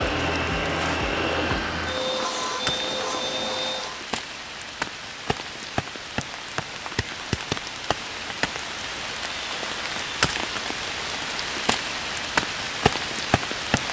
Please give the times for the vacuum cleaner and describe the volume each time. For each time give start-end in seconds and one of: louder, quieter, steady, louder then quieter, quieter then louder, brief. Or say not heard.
0.0-4.0 steady.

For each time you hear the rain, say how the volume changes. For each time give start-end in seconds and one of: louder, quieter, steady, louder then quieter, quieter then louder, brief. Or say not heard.
0.0-13.8 louder.